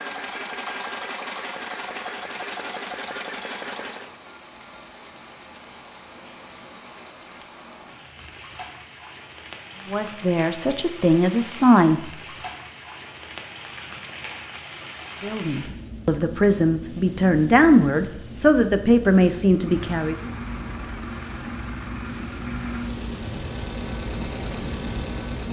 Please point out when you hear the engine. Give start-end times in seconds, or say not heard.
0.0-4.2, 19.5-25.4.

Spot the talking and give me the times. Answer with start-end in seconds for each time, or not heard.
9.8-12.1, 15.2-20.3.